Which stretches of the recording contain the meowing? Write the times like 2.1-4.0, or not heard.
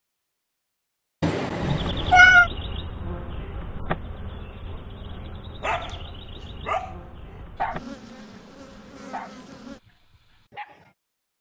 1.2-2.5.